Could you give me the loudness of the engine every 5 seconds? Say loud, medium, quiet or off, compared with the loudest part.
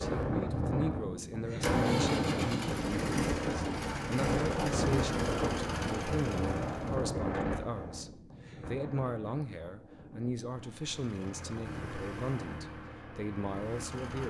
loud, loud, medium.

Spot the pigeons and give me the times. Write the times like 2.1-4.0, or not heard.
not heard.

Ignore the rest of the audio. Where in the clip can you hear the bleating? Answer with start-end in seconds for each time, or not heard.
not heard.